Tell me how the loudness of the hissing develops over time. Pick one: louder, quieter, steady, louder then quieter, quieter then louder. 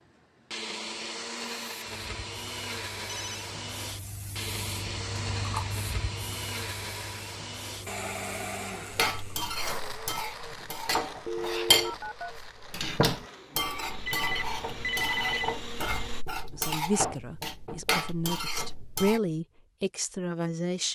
louder then quieter.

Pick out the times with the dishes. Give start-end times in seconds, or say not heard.
8.9-19.2.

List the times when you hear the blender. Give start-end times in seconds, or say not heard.
0.0-16.2.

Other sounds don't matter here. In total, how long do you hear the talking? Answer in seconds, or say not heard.
4 s.